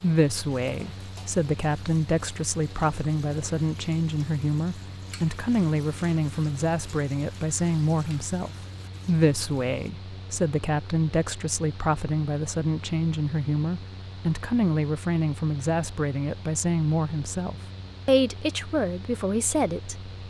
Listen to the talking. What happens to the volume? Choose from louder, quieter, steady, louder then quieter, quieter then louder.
steady.